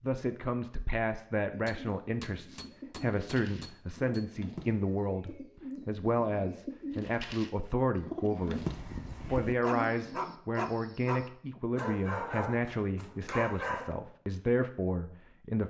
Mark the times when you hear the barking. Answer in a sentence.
You can hear the barking from 8.4 to 13.9 s.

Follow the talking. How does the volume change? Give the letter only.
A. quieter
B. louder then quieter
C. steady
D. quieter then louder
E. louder
C.